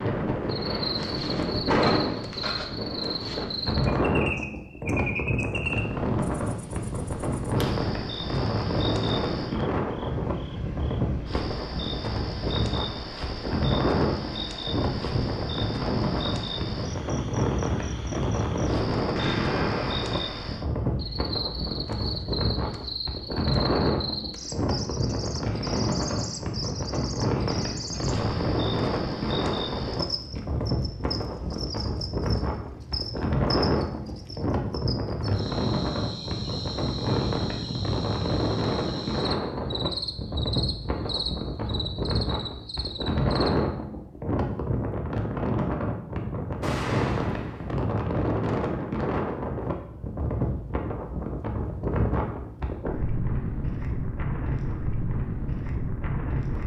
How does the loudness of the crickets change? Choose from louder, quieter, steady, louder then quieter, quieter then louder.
steady.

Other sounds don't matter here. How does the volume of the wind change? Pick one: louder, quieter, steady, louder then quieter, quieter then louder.
steady.